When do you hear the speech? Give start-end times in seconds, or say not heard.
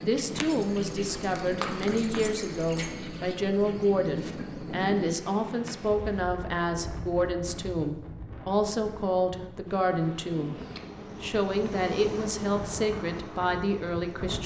0.0-10.6, 11.2-14.4.